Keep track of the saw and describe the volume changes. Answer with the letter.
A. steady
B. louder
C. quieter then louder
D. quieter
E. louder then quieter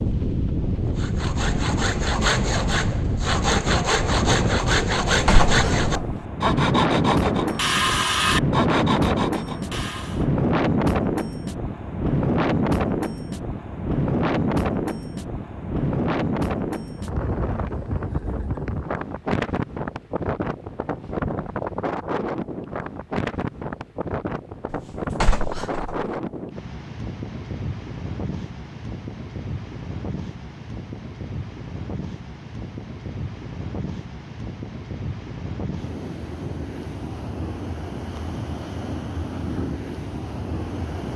A.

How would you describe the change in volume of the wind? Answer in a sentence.
The volume of the wind goes down.